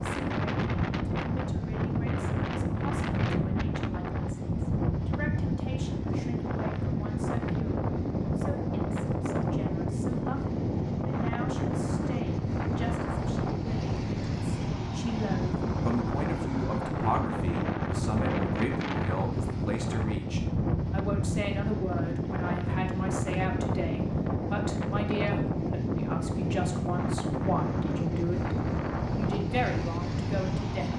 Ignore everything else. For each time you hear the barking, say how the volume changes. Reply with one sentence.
You can't hear the barking here.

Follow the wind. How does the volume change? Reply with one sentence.
The volume of the wind stays about the same.